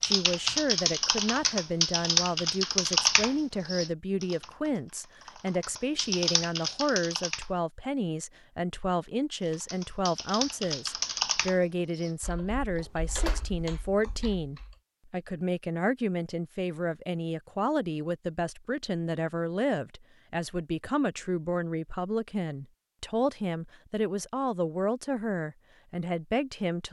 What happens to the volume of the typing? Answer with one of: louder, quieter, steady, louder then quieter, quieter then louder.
quieter.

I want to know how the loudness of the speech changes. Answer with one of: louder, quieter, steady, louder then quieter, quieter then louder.
steady.